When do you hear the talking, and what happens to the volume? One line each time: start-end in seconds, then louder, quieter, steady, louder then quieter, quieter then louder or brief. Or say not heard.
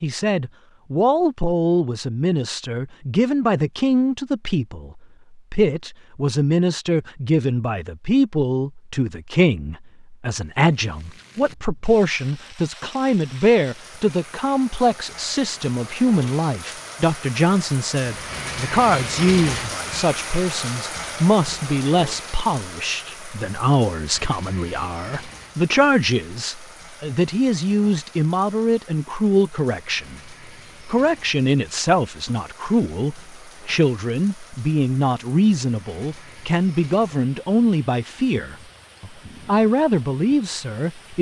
0.0-41.1 steady.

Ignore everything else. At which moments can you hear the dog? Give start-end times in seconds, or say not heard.
not heard.